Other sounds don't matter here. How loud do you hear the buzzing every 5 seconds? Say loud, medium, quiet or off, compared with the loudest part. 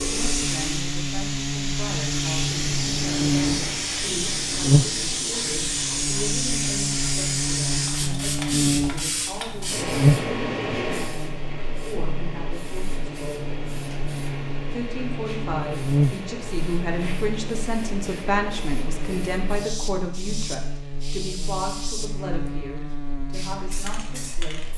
loud, loud, loud, loud, medium.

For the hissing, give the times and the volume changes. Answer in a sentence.
You can hear the hissing from 0.0 to 24.7 s, getting quieter.